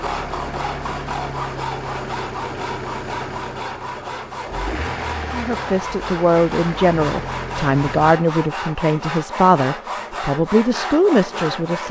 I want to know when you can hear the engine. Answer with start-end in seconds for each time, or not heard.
0.0-8.2.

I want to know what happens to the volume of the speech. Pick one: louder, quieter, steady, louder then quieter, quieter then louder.
steady.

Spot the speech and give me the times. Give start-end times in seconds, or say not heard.
5.3-11.8.